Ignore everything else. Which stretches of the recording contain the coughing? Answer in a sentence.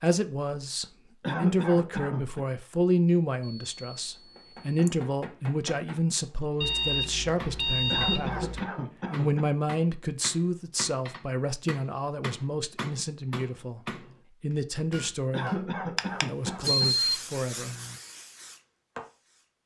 You can hear the coughing from 1.2 to 2.5 s, from 7.9 to 9.5 s and from 15.3 to 16.9 s.